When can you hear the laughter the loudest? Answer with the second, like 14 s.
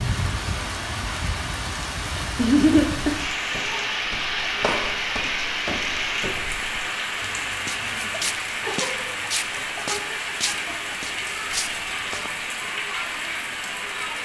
3 s.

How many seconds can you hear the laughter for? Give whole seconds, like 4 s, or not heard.
3 s.